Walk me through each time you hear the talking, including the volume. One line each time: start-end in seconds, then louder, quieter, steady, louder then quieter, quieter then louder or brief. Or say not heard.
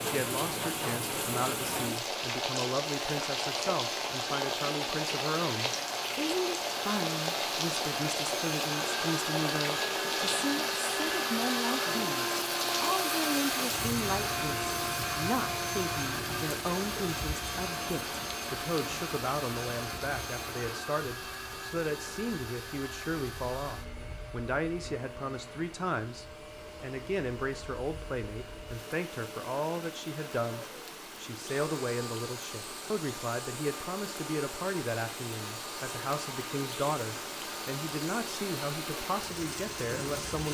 0.0-40.4 steady.